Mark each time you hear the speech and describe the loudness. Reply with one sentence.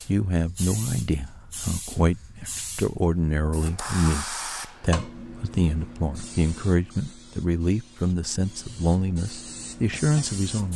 The speech can be heard from 0.1 to 10.7 s, at a steady volume.